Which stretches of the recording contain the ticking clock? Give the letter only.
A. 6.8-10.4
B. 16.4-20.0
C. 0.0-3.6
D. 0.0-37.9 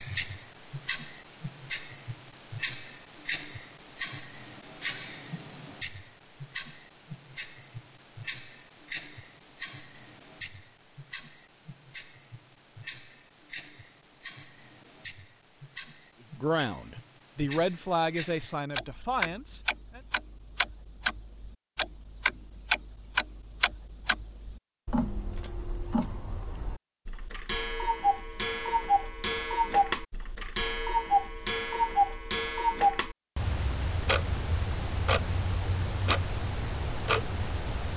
D.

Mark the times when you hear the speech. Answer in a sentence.
The speech can be heard from 16.4 to 20.0 s.